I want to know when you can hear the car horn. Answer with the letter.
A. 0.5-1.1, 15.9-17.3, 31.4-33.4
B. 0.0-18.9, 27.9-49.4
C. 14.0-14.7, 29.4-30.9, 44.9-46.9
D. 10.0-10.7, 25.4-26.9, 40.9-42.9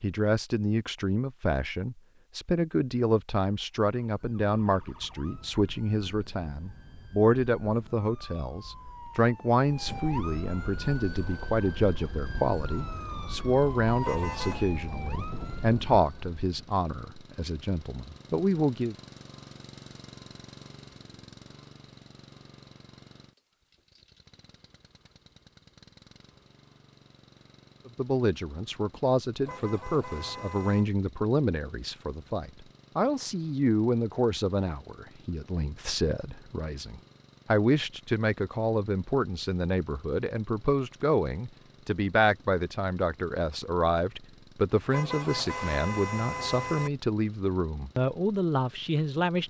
C.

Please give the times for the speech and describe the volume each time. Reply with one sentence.
You can hear the speech from 0.0 to 18.9 s, at a steady volume; and from 27.9 to 49.4 s, at a steady volume.